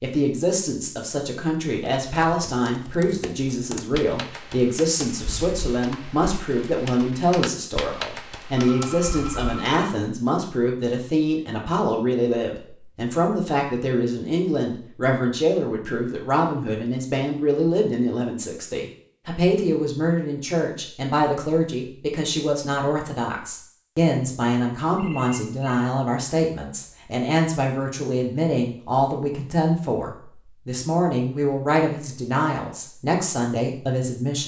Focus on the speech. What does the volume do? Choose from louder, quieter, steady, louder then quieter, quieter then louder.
steady.